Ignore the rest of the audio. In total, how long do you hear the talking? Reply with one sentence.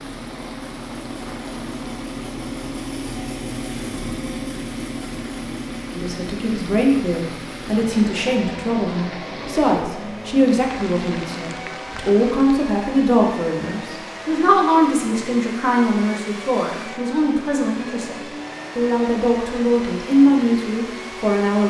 The talking can be heard for 16 seconds in total.